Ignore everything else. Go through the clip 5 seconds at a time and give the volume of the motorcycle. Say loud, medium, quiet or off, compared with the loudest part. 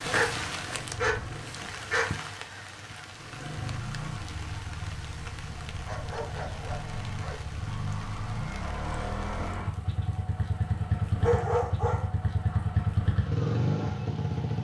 medium, medium, loud.